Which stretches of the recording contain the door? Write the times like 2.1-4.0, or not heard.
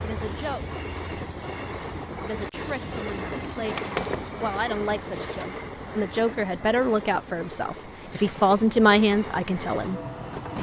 3.3-4.3.